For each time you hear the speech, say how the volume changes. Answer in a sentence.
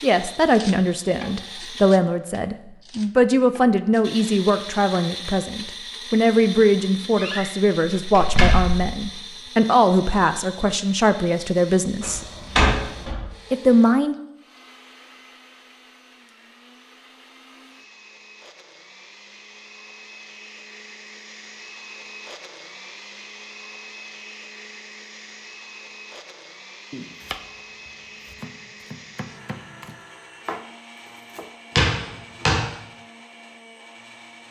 The speech can be heard from 0.0 to 12.2 s, at a steady volume; and briefly from 13.5 to 14.2 s.